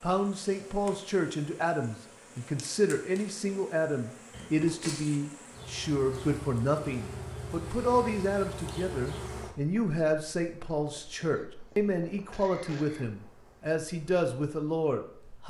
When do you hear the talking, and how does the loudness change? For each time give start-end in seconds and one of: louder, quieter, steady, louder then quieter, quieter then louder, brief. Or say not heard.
0.0-15.4 steady.